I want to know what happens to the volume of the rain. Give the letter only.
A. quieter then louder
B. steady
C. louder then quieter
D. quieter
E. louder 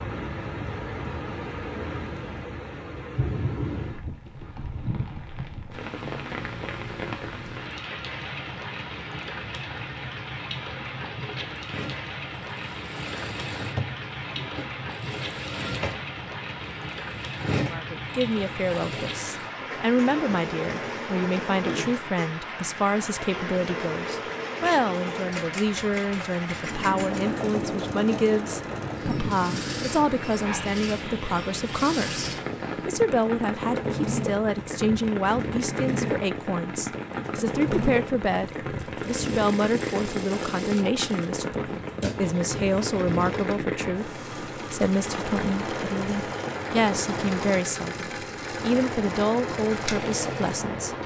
B.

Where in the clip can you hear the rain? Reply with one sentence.
You can hear the rain from 0.0 to 51.0 s.